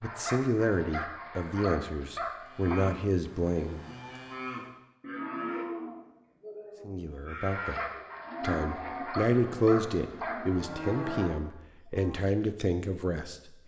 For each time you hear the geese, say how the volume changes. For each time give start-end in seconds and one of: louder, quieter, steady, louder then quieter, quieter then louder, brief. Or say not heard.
not heard.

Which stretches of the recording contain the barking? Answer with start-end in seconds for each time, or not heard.
0.0-2.8, 7.5-10.4.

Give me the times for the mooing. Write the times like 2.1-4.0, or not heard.
2.4-12.3.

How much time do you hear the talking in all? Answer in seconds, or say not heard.
10 s.